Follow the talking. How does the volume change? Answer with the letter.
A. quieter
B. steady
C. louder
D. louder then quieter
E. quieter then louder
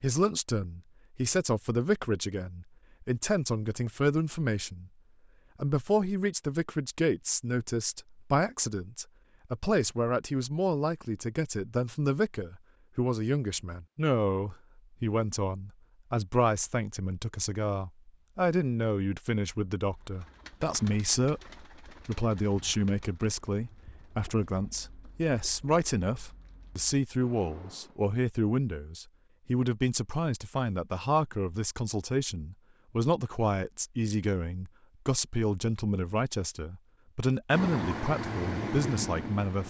B.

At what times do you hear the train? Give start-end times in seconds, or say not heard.
37.5-39.6.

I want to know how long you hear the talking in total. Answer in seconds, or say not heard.
39 s.